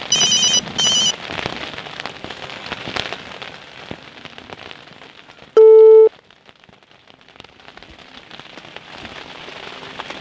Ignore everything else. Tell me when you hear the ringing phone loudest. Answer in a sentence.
The loudest moment of the ringing phone is at 6 seconds.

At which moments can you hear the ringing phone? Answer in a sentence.
You can hear the ringing phone from 0.1 to 1.1 s and from 5.5 to 6.1 s.